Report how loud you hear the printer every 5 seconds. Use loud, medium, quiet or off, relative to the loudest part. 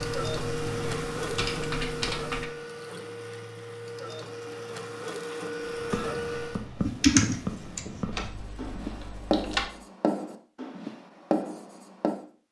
loud, loud, off.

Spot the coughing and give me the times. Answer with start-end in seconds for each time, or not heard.
not heard.